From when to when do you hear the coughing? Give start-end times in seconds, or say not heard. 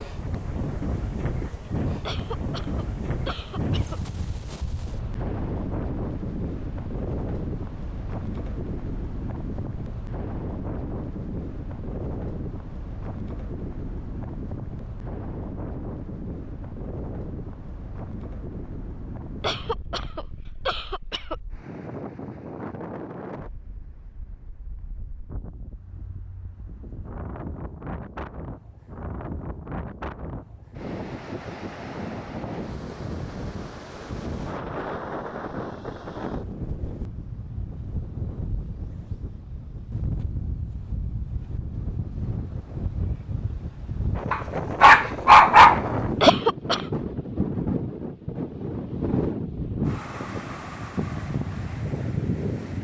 2.0-4.0, 19.4-21.4, 46.2-46.9.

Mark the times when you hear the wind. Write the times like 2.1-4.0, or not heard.
0.0-52.7.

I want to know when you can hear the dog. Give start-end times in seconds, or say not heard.
44.3-46.3.